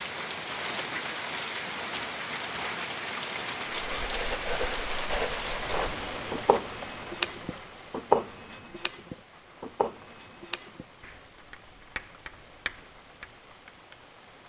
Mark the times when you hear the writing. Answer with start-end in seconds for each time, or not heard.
3.9-13.9.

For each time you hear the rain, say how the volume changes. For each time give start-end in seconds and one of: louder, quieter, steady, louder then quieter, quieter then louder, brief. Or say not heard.
0.0-14.4 quieter.